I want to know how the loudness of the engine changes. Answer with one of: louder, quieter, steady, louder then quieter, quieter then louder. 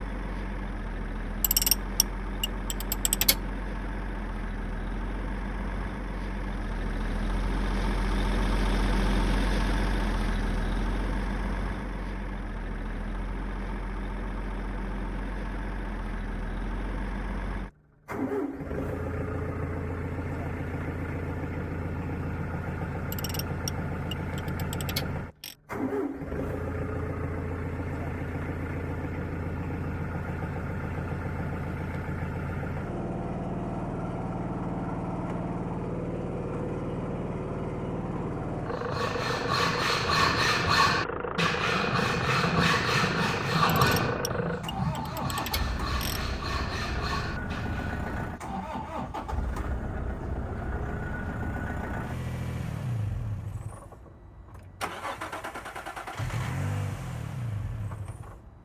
steady.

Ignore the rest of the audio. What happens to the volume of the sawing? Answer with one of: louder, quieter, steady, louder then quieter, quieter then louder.
quieter.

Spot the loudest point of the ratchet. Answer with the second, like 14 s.
2 s.